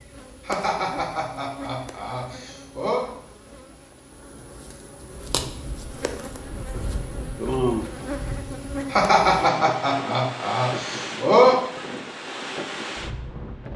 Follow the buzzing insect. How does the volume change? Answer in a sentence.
The loudness of the buzzing insect goes down, then up.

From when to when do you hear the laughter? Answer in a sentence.
The laughter can be heard from 0.5 to 3.0 s and from 8.9 to 11.6 s.